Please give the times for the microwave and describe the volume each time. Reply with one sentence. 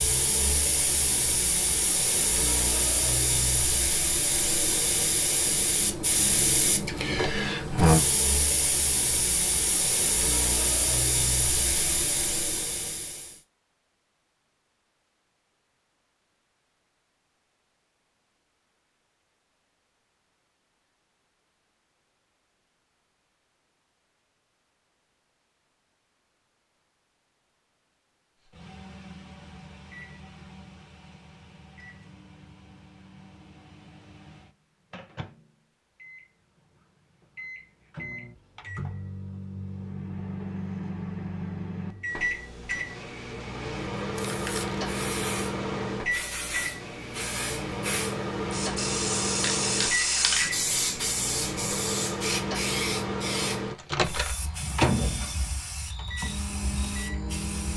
You can hear the microwave from 28.4 to 57.7 s, getting louder.